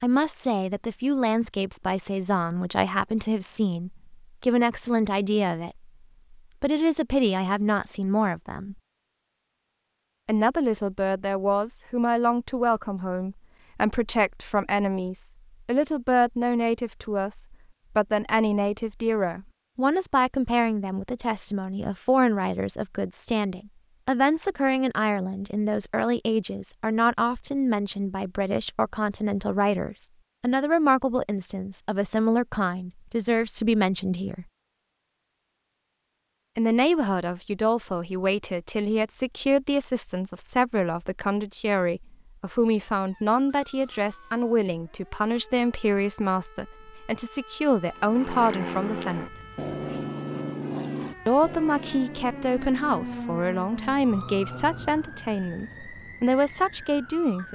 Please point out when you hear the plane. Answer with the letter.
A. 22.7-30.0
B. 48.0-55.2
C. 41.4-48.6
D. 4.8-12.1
B.